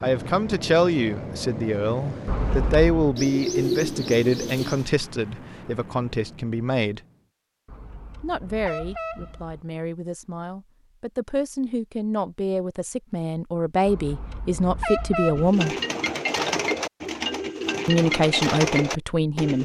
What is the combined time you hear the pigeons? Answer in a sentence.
You can hear the pigeons for 6 seconds altogether.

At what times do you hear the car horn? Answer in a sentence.
You can hear the car horn from 2.2 to 3.1 s, from 7.7 to 9.7 s and from 13.8 to 15.5 s.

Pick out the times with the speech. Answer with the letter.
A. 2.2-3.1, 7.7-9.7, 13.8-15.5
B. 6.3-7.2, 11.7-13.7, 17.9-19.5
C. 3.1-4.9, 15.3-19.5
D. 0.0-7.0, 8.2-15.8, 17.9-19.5
D.